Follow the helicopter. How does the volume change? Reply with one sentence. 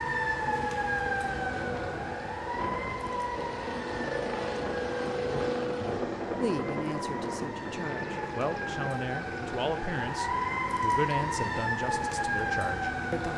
The volume of the helicopter goes up, then down.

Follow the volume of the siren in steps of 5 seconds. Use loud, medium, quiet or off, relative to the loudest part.
loud, medium, loud.